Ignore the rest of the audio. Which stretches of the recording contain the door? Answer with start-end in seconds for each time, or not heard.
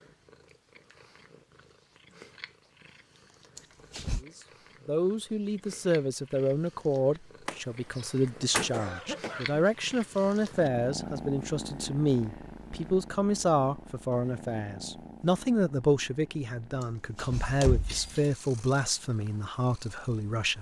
3.5-4.2, 7.5-8.7, 16.8-18.3.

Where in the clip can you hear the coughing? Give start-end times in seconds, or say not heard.
8.7-9.6.